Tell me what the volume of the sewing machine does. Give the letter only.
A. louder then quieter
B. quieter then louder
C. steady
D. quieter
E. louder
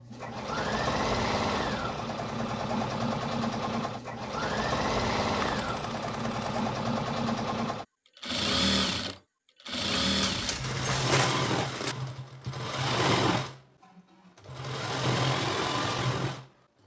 C.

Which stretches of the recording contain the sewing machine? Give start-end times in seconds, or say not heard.
0.0-16.4.